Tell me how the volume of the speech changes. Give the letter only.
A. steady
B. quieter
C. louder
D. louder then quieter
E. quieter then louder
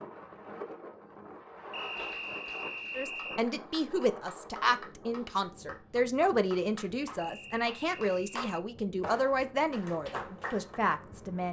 A.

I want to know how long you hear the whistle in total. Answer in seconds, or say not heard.
3 s.